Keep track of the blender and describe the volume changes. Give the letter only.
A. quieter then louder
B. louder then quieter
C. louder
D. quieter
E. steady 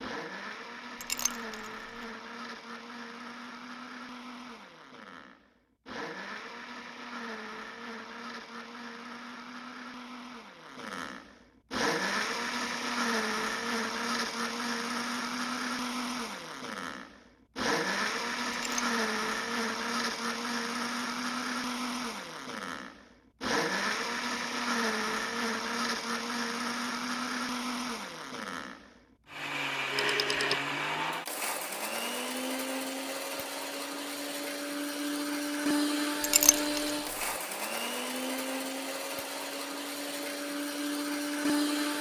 C.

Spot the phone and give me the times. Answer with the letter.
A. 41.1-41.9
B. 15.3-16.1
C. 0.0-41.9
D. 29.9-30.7
D.